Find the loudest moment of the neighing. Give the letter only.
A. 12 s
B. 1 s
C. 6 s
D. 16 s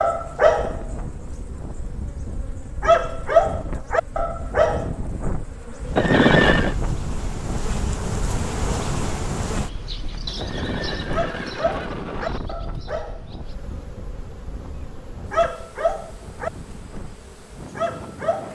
C.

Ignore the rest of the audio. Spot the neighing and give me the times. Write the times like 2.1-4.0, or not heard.
6.0-6.8, 10.3-12.4.